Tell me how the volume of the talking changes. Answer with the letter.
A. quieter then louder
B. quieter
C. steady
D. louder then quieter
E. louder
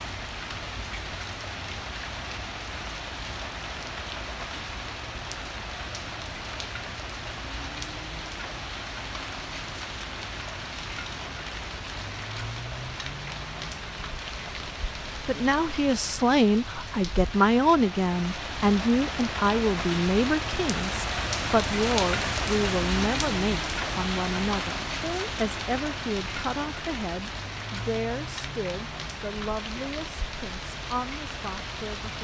B.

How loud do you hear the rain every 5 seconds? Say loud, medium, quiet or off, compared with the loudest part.
medium, medium, medium, medium, loud, medium, medium.